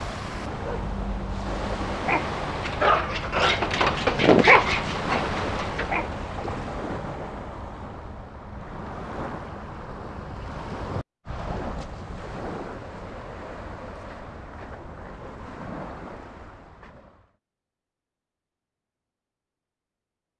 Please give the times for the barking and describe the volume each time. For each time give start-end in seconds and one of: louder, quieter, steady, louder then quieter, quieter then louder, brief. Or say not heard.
0.5-6.0 louder then quieter.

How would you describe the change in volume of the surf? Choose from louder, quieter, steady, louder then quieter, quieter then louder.
quieter.